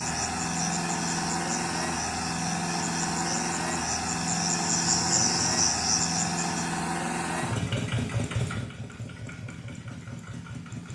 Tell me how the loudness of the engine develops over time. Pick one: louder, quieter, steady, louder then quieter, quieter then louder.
quieter.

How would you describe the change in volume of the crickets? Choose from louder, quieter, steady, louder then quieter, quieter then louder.
louder.